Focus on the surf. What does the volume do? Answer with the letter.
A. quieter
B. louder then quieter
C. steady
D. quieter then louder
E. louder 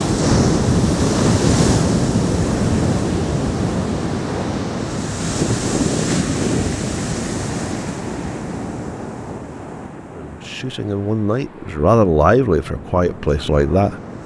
A.